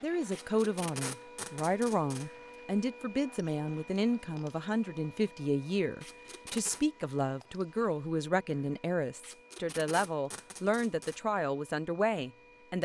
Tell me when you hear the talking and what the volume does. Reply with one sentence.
You can hear the talking from 0.0 to 12.8 s, at a steady volume.